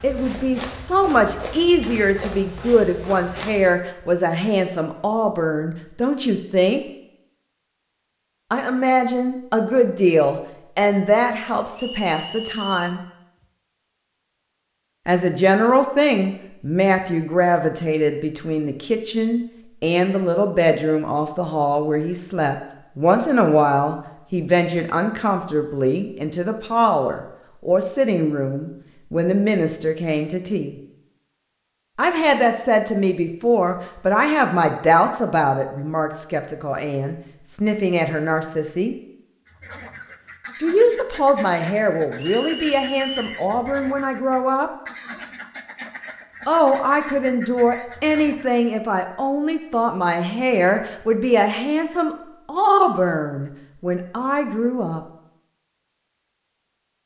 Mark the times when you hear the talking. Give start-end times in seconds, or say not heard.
0.0-6.8, 8.5-13.0, 15.1-30.8, 31.9-39.0, 40.6-44.7, 46.5-55.0.